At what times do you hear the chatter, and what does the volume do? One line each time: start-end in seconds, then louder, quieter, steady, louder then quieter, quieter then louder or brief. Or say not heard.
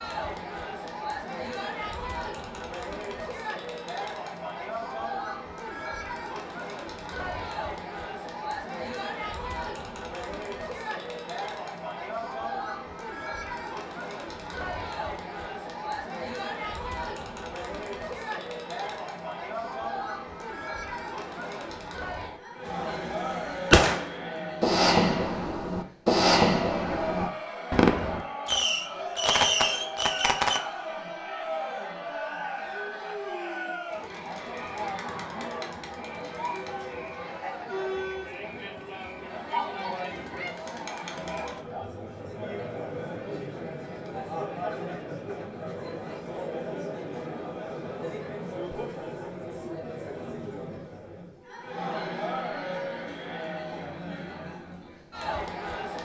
0.0-55.9 steady.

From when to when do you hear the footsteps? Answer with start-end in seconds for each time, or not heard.
not heard.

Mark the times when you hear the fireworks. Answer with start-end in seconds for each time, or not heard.
22.6-30.6.